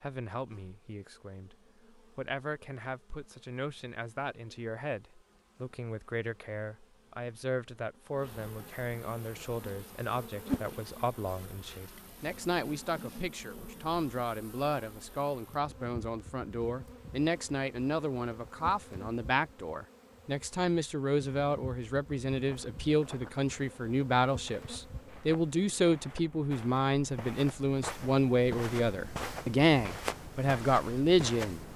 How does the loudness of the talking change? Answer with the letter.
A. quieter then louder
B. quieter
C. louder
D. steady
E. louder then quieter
C.